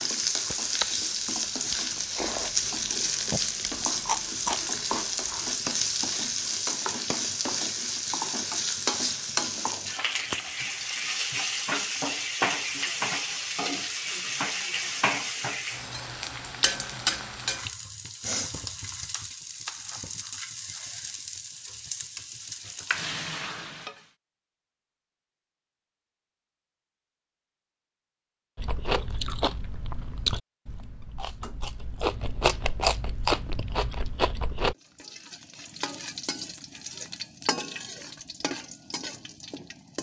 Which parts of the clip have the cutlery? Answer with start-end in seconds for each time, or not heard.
not heard.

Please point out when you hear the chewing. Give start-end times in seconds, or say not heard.
0.5-6.5, 28.6-34.8.